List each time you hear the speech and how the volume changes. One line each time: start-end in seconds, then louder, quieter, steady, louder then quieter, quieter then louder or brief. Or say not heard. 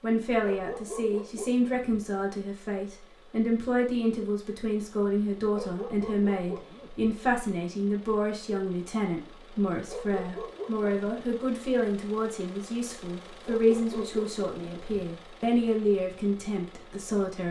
0.0-17.4 steady.